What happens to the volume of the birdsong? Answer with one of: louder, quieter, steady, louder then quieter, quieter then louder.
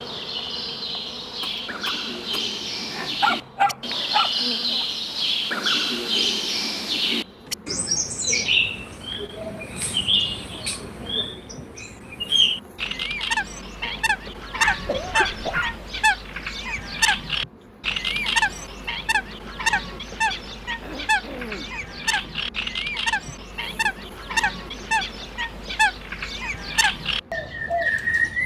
steady.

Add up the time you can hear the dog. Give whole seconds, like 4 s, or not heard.
3 s.